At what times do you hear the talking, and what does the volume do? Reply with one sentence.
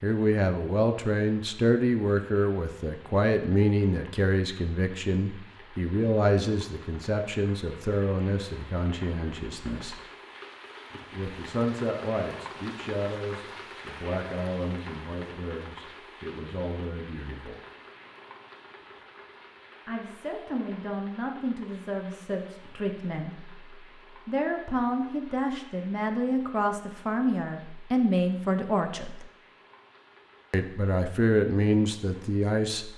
You can hear the talking from 0.0 to 10.0 s, getting quieter; from 11.1 to 17.6 s, getting quieter; from 19.9 to 29.2 s, getting louder; and briefly from 30.5 to 32.9 s.